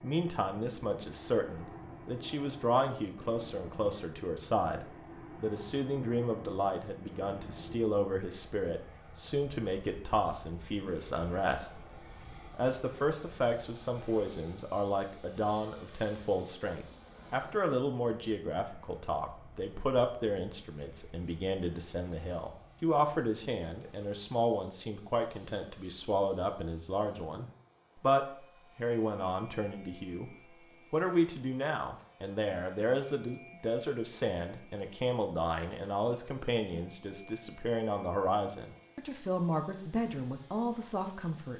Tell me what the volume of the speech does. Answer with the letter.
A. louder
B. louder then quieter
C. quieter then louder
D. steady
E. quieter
D.